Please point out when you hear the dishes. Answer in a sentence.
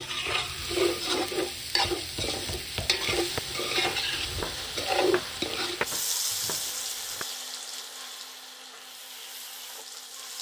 You can't hear the dishes here.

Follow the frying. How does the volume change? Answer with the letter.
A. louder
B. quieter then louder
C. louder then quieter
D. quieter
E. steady
D.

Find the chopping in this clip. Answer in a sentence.
You can hear the chopping from 1.8 to 7.2 s.